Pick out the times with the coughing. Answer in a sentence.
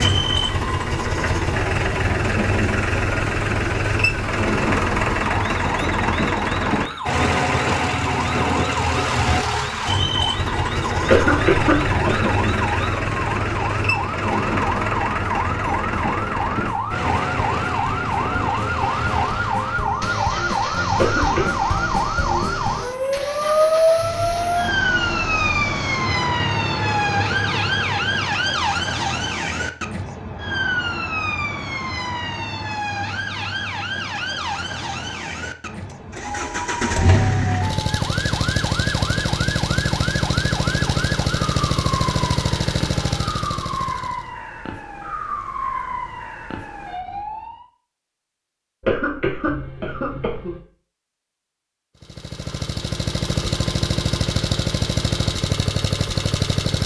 The coughing can be heard from 11.1 to 12.3 s, from 20.9 to 21.6 s and from 48.8 to 50.6 s.